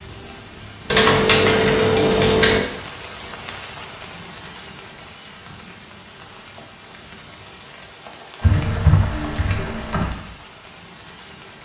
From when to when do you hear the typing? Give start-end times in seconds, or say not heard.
0.9-2.6, 8.4-10.1.